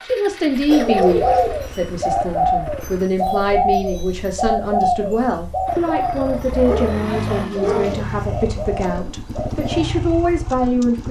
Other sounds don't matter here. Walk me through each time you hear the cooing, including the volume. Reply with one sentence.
The cooing can be heard from 0.5 to 9.8 s, getting quieter.